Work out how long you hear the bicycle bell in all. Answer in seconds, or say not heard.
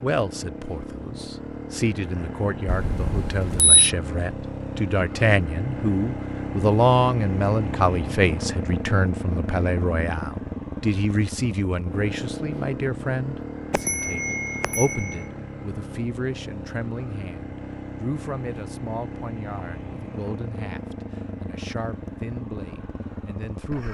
3 s.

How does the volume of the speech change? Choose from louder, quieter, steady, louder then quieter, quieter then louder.
louder then quieter.